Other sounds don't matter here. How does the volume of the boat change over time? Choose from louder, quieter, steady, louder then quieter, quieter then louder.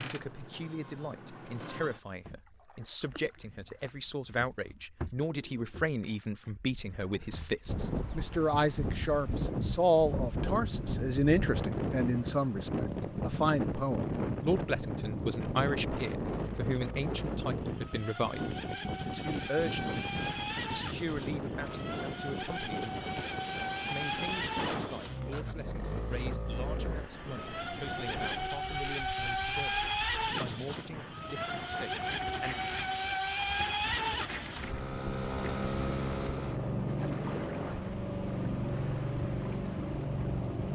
louder.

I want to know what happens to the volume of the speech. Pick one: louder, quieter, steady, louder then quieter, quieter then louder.
louder then quieter.